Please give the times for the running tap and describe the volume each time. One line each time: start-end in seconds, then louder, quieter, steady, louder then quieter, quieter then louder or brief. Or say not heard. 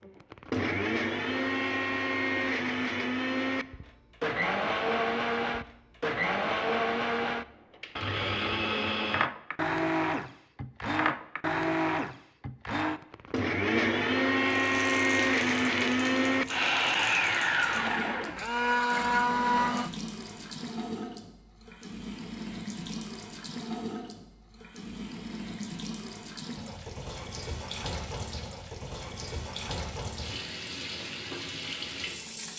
14.6-32.5 steady.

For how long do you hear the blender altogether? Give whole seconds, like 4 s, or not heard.
20 s.